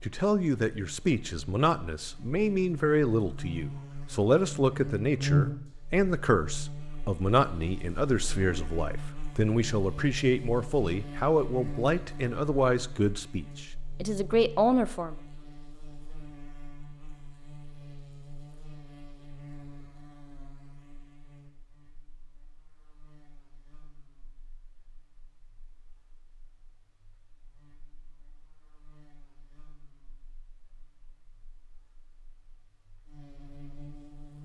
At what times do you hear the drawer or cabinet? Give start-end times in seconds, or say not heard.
not heard.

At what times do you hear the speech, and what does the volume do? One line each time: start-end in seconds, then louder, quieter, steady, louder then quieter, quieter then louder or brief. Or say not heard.
0.0-15.2 steady.